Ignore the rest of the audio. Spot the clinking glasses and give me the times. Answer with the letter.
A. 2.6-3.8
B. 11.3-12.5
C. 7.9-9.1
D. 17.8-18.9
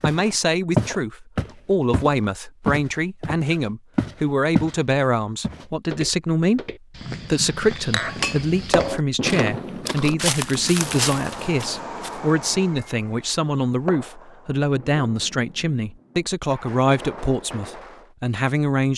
C.